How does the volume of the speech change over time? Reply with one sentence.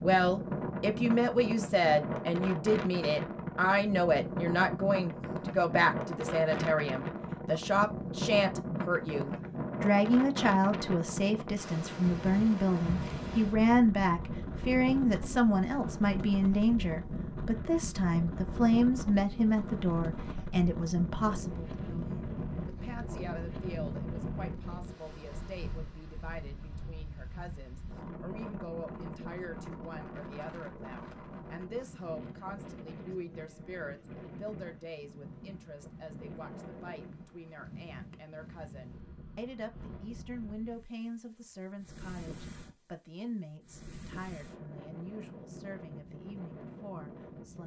The loudness of the speech goes down.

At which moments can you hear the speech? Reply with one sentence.
The speech can be heard from 0.0 to 47.6 s.